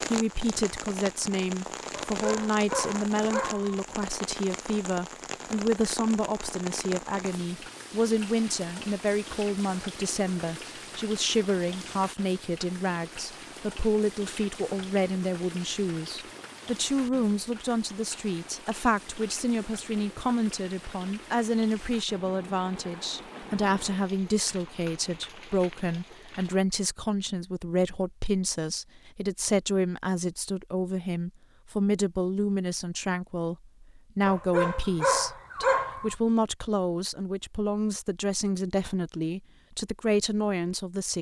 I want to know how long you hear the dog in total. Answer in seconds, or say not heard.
4 s.